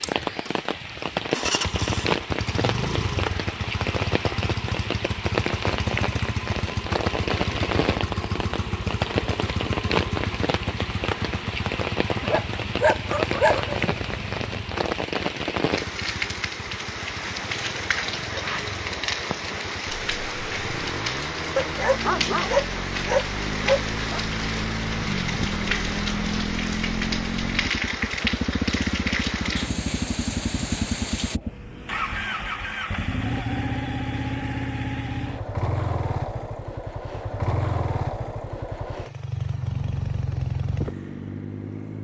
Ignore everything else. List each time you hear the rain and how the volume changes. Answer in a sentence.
You can hear the rain from 0.0 to 31.4 s, at a steady volume.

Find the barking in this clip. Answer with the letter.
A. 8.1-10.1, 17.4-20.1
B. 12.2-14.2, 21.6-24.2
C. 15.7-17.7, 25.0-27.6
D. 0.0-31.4
B.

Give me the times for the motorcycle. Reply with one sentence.
You can hear the motorcycle from 0.0 to 41.9 s.